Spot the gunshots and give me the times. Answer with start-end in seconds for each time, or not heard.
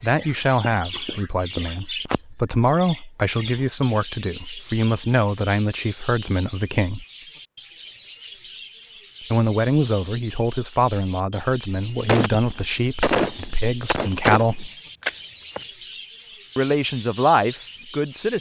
12.1-15.6.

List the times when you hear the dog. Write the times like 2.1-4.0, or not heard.
not heard.